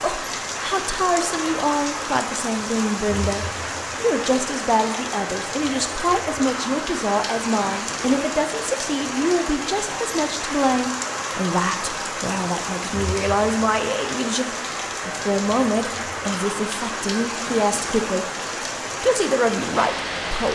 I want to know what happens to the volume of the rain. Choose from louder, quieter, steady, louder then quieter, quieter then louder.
steady.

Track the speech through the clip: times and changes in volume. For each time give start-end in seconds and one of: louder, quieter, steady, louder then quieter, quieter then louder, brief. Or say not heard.
0.0-18.3 steady
19.0-20.5 brief.